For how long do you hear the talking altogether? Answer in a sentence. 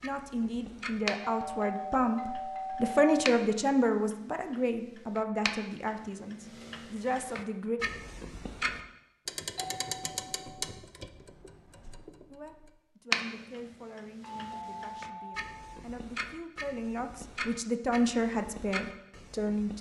You can hear the talking for 15 seconds altogether.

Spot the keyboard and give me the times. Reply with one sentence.
You can't hear the keyboard here.